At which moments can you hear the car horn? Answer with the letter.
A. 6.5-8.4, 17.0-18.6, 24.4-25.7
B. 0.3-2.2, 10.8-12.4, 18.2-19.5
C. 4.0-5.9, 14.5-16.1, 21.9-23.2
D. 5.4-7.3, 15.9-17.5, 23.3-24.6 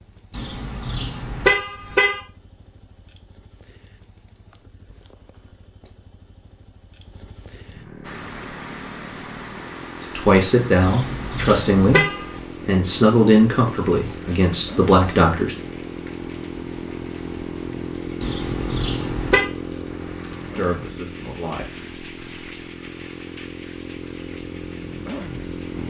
B.